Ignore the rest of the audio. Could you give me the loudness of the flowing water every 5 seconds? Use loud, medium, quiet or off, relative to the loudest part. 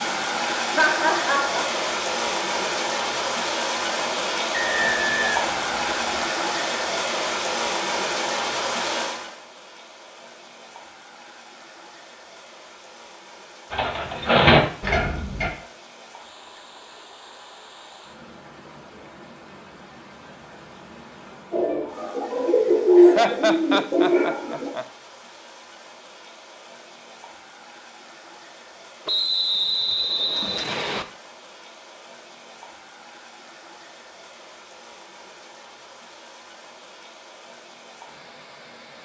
loud, loud, quiet, quiet, quiet, quiet, quiet, quiet.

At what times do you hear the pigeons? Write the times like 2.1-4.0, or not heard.
13.7-15.5, 21.5-24.7.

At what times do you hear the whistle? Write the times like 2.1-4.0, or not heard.
4.5-6.2, 29.1-31.1.